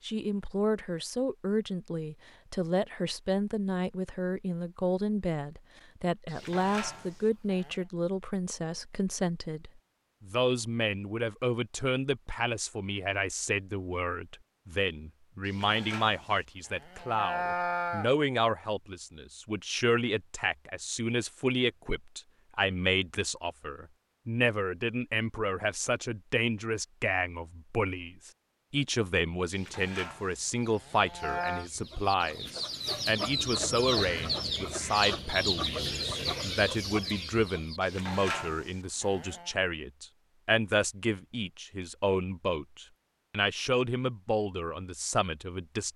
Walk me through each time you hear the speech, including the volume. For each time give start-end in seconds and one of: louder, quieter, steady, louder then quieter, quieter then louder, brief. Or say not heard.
0.0-45.9 steady.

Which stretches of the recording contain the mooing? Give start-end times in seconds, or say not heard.
6.3-7.8, 15.4-18.1, 29.5-31.6, 37.8-39.5.